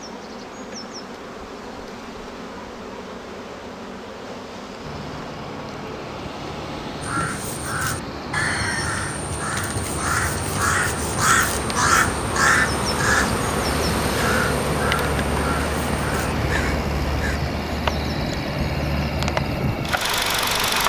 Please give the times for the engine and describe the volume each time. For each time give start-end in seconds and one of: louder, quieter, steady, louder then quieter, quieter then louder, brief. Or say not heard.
4.8-20.8 louder.